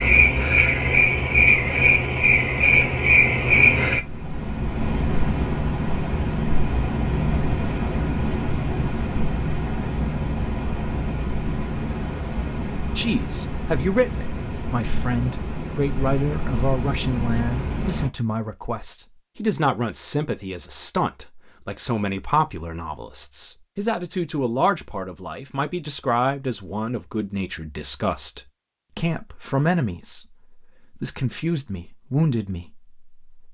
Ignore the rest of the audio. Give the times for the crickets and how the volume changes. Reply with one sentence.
The crickets can be heard from 0.0 to 18.1 s, getting quieter.